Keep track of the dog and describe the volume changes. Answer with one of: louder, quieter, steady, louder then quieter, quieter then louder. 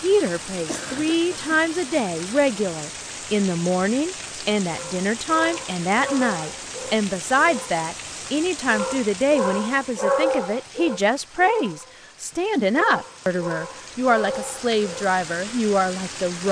louder then quieter.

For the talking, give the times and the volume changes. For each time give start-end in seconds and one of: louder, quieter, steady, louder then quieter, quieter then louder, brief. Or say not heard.
0.0-16.4 steady.